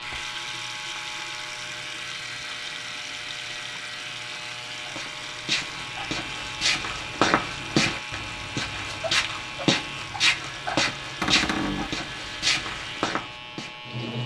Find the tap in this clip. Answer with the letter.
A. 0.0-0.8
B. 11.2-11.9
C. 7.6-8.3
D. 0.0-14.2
D.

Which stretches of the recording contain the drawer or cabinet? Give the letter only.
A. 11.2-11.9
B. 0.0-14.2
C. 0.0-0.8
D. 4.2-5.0
A.